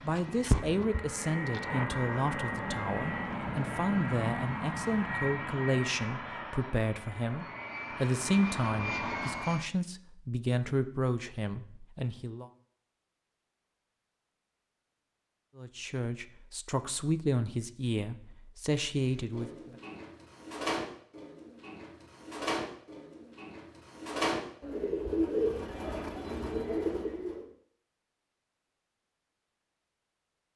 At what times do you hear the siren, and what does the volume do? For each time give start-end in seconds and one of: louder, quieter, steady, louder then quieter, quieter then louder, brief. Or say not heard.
not heard.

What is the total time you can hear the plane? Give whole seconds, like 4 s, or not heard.
10 s.